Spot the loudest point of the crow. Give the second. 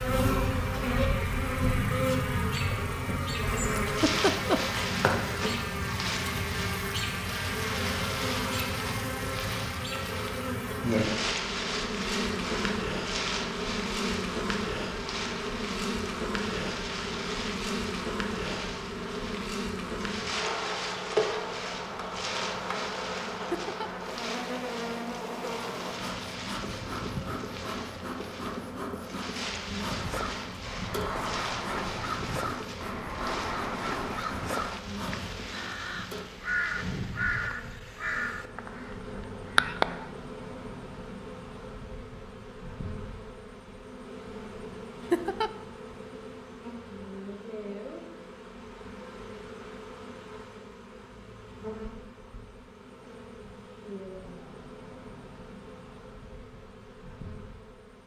40 s.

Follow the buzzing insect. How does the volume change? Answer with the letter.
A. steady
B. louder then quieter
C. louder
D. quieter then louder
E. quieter
E.